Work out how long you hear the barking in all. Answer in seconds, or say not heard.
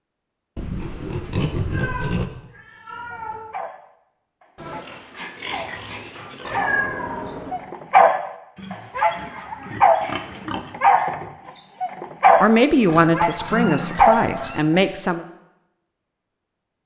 11 s.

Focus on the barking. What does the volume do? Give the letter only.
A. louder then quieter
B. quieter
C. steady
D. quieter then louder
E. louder
E.